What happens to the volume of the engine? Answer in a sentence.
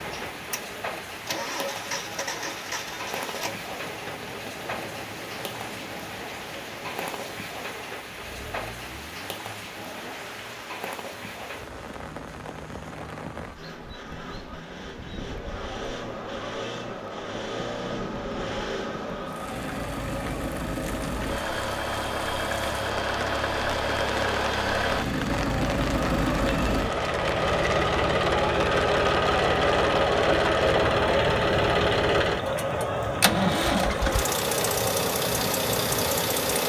The loudness of the engine goes down, then up.